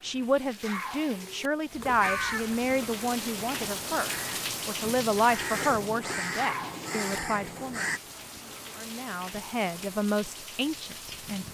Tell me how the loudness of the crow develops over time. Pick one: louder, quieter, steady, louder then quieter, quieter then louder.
quieter then louder.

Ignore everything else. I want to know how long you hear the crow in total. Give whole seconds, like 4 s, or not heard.
6 s.